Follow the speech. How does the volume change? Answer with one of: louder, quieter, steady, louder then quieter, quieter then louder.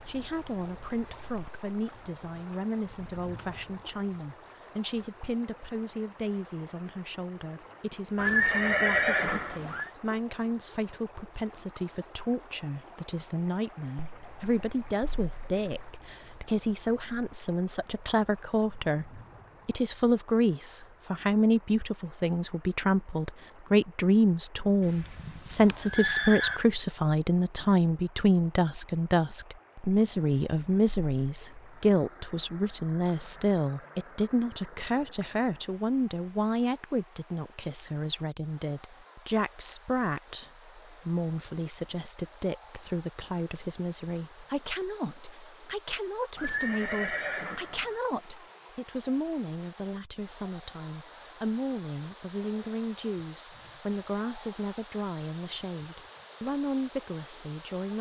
louder then quieter.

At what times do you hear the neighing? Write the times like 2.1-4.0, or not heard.
8.2-9.9, 24.8-26.6, 46.4-48.0.